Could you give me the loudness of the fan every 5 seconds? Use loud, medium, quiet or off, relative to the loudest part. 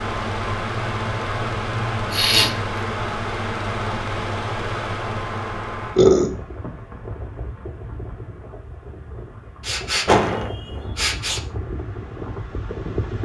loud, medium, medium.